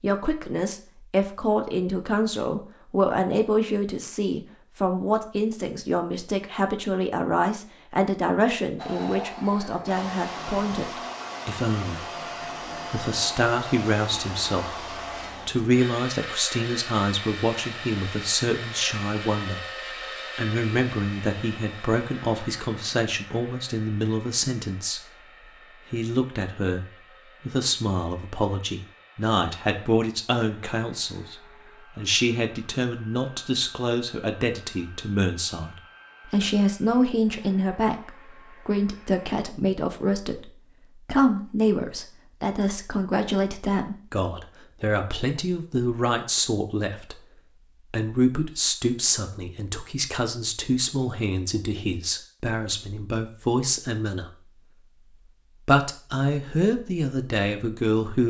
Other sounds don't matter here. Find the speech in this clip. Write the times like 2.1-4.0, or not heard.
0.0-12.1, 12.9-19.6, 20.4-25.1, 25.9-47.2, 47.9-54.3, 55.6-58.2.